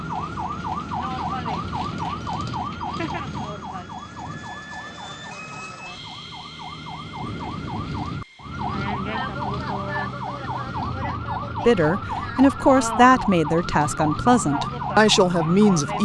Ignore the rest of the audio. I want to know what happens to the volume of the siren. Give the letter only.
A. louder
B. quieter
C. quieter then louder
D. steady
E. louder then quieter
C.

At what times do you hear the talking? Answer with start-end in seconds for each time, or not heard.
11.7-16.0.